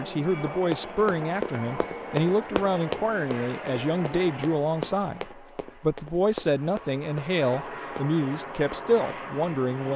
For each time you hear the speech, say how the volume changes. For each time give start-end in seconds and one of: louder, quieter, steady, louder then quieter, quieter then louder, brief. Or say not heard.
0.0-9.9 steady.